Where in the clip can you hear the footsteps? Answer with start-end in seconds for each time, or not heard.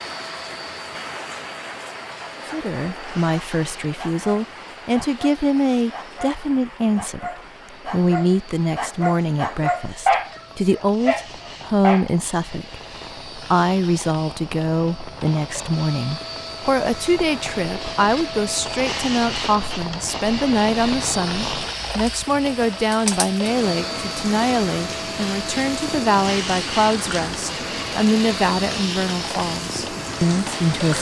not heard.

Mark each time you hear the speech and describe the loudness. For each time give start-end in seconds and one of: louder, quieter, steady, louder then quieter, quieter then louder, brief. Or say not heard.
2.5-30.9 steady.